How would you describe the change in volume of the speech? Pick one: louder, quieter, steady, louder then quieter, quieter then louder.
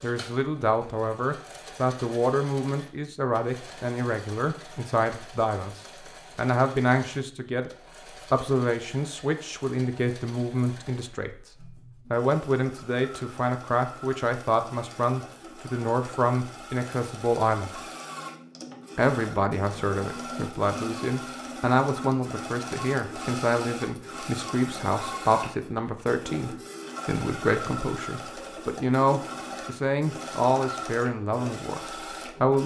steady.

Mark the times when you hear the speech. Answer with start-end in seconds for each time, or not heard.
0.0-7.7, 8.3-17.8, 18.9-32.6.